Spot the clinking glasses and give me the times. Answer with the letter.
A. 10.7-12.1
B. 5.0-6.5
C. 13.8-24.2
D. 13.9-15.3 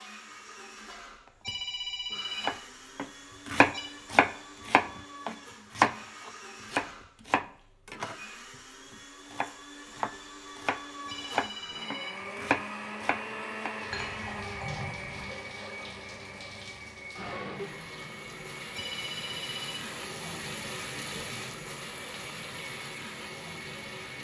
D.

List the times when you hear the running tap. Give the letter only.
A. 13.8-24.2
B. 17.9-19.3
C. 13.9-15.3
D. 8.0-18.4
A.